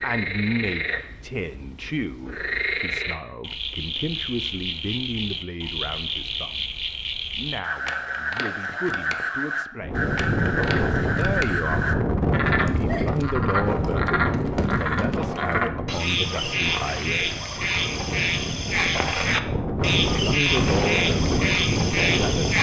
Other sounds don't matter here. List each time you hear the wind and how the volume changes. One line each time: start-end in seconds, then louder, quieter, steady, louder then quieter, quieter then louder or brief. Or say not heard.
9.8-22.5 quieter then louder.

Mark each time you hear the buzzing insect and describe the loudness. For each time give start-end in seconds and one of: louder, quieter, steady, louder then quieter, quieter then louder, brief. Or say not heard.
not heard.